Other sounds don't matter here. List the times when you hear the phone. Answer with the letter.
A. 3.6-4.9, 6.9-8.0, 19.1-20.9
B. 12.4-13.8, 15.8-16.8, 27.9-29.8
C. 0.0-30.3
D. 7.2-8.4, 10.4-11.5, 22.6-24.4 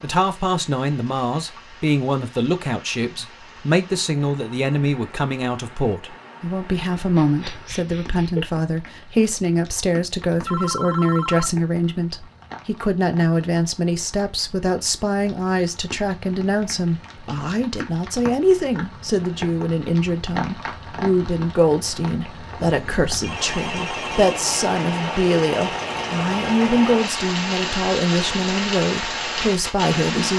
D.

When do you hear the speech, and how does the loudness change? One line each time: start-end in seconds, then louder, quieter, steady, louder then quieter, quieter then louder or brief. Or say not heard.
0.0-30.3 steady.